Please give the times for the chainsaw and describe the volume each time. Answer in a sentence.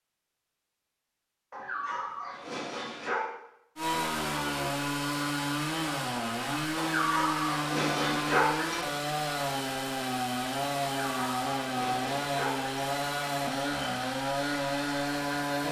The chainsaw can be heard from 3.8 to 15.6 s, at a steady volume.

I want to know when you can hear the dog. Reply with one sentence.
You can hear the dog from 1.5 to 3.3 s, from 6.8 to 8.8 s and from 11.1 to 12.7 s.